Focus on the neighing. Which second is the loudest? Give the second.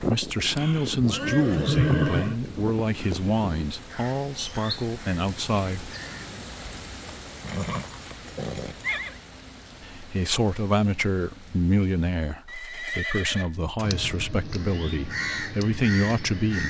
2 s.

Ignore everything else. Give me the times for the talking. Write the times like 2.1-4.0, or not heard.
0.0-5.9, 9.8-16.6.